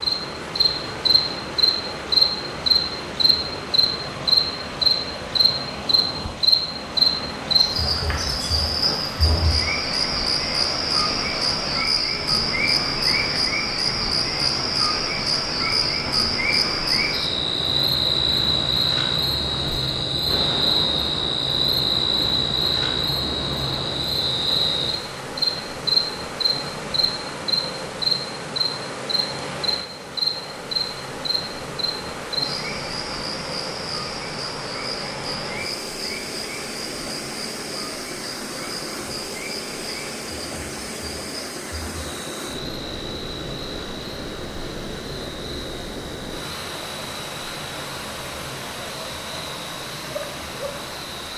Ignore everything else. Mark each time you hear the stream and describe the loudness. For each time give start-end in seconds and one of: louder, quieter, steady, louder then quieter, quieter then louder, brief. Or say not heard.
0.0-51.3 steady.